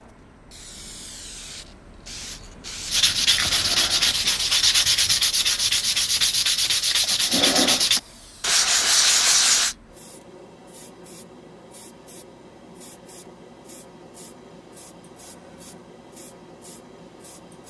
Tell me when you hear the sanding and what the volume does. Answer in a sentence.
The sanding can be heard from 2.9 to 9.8 s, at a steady volume.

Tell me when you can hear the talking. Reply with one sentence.
The talking can't be heard in this clip.